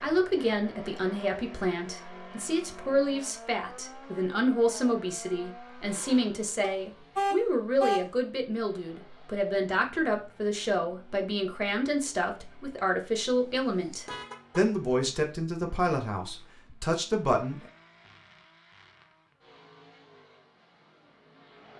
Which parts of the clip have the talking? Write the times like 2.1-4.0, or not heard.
0.0-17.6.